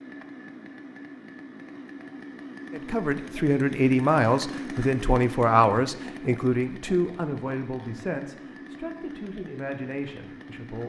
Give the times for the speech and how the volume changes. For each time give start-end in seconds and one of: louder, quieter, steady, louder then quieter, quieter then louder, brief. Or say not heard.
2.7-10.8 quieter.